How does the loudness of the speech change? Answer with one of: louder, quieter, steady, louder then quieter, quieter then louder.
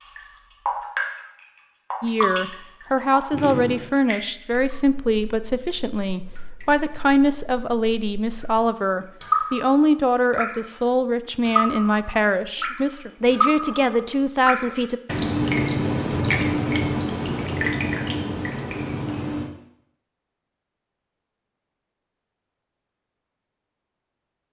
steady.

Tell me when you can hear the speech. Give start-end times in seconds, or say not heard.
2.0-15.0.